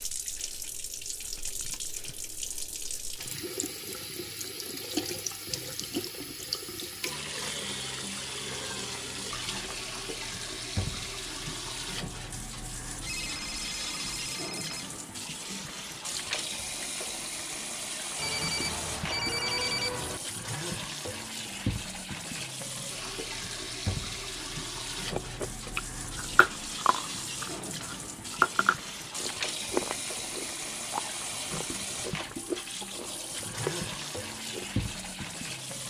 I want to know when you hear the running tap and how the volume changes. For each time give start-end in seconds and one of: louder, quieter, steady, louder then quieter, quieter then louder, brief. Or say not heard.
0.0-35.8 steady.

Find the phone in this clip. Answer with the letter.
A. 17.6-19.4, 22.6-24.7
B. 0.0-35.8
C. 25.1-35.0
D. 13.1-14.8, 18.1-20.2
D.